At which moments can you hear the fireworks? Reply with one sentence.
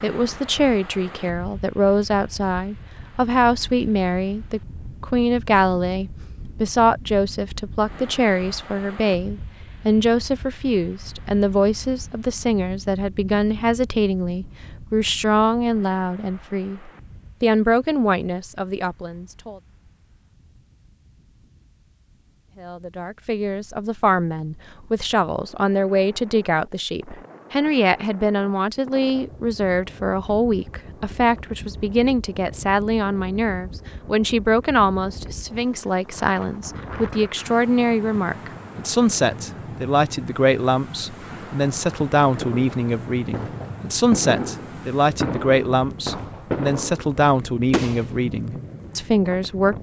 The fireworks can be heard from 42.2 to 48.1 s.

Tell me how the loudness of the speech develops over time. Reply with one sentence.
The loudness of the speech stays about the same.